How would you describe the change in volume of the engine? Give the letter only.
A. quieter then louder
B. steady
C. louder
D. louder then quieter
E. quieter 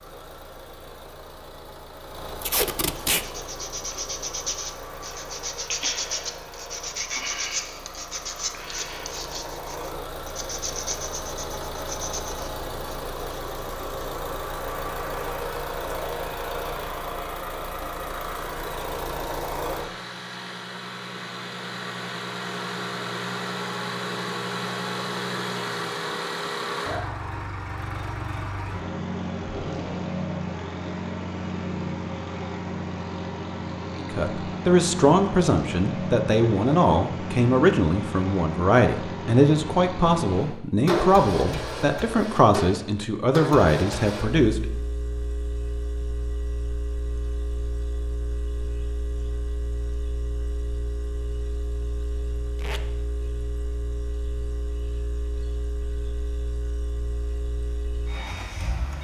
D.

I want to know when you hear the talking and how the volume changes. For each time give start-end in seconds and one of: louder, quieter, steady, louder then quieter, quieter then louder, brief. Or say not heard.
34.0-44.6 steady.